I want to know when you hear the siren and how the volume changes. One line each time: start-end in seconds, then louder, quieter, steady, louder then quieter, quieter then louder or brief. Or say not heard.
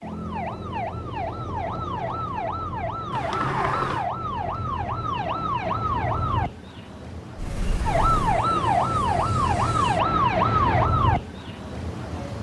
0.0-12.3 louder.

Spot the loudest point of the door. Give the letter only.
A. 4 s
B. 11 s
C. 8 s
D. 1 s
A.